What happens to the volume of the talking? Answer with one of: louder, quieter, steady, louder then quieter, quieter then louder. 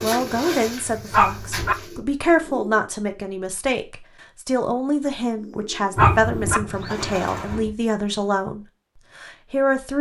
steady.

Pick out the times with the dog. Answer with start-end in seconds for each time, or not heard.
1.1-1.8, 6.0-6.6.